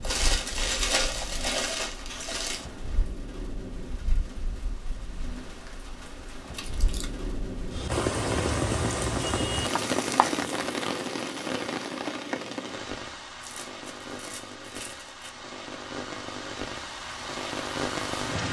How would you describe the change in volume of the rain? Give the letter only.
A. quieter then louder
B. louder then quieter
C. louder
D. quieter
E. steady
B.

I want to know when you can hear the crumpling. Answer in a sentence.
You can hear the crumpling from 0.0 to 2.6 s, from 6.5 to 7.2 s and from 13.4 to 15.3 s.